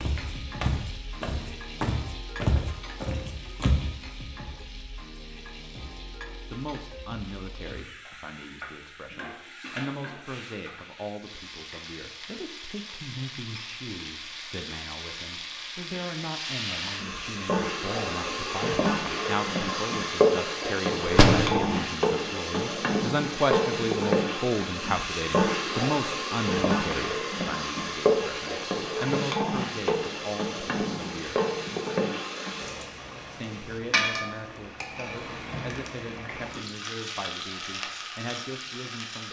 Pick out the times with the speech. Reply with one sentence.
The speech can be heard from 6.0 to 31.4 s and from 33.2 to 39.2 s.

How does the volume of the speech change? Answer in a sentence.
The loudness of the speech goes up, then down.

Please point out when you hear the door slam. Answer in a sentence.
The door slam can be heard from 21.1 to 21.7 s.